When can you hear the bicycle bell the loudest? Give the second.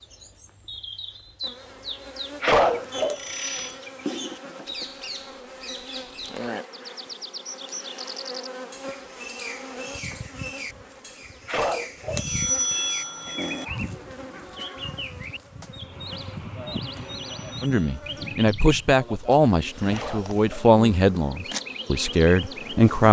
13 s.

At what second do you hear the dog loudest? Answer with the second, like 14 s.
3 s.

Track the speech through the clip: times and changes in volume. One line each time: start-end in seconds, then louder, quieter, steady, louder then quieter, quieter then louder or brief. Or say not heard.
17.6-23.0 steady.